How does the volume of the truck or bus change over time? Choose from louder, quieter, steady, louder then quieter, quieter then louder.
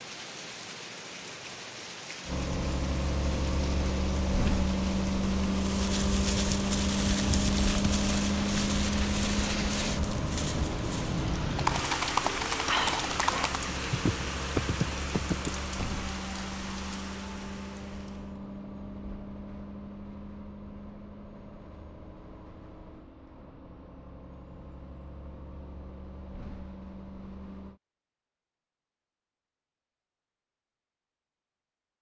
quieter.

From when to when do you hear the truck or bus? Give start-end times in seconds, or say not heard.
2.2-27.8.